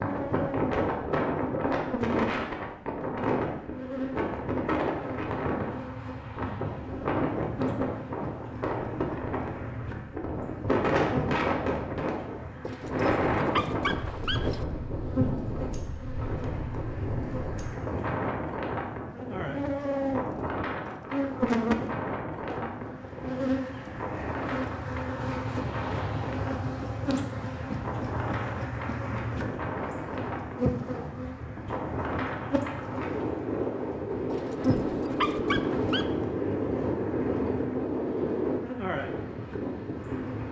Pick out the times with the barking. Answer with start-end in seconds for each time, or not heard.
12.6-14.7, 34.3-36.1.